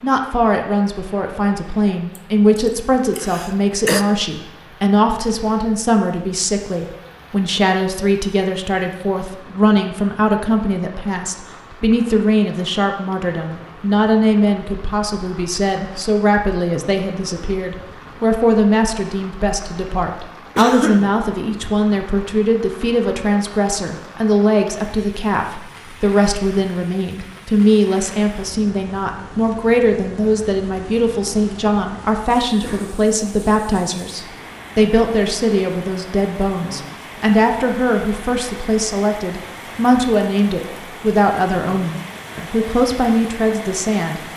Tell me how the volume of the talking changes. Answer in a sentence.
The volume of the talking stays about the same.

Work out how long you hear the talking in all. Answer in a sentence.
The talking can be heard for 44 seconds in total.